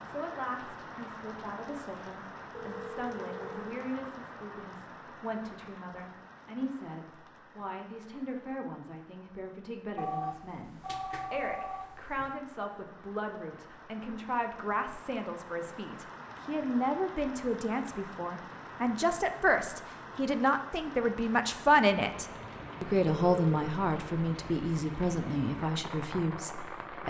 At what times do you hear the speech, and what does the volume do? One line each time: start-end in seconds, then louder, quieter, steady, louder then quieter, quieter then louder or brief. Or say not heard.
0.0-27.0 louder.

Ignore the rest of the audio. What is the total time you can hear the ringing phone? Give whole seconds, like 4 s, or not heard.
4 s.